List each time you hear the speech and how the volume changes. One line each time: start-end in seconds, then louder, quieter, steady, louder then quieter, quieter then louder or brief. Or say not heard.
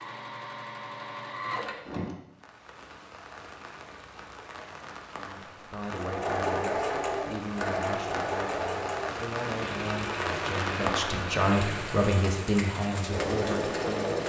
5.1-14.2 louder.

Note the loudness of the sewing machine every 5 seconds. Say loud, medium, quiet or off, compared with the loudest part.
medium, loud, loud.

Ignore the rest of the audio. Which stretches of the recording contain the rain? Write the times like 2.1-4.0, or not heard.
2.3-14.2.